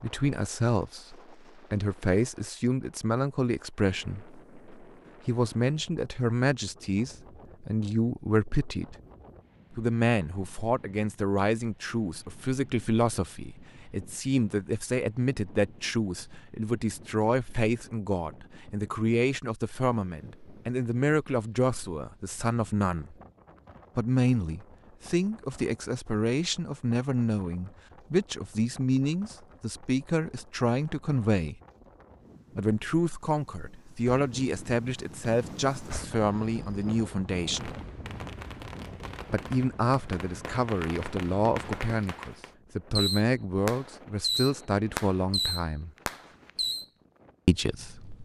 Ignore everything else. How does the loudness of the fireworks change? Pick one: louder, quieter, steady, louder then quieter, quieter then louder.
louder.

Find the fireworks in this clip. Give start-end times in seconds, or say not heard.
35.3-46.9.